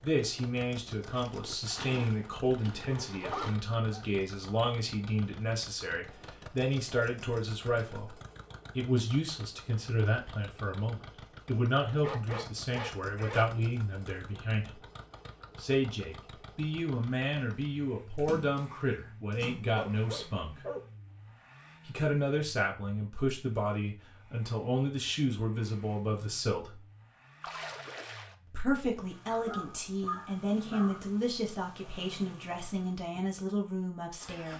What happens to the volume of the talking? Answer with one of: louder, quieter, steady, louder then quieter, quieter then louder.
steady.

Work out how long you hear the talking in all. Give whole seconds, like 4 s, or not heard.
30 s.